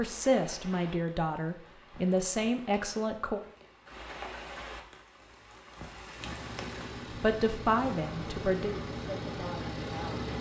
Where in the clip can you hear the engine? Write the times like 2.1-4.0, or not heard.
6.2-10.3.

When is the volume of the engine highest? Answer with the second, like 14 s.
10 s.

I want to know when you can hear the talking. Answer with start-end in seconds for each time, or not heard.
0.0-3.4, 7.1-10.2.